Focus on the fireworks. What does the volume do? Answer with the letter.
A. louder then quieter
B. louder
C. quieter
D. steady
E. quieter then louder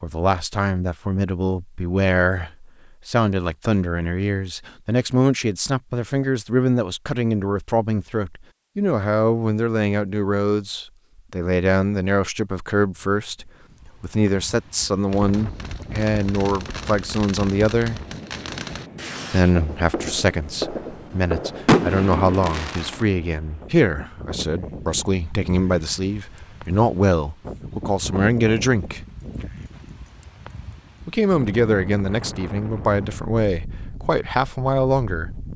B.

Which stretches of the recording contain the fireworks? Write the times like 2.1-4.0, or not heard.
15.1-23.1.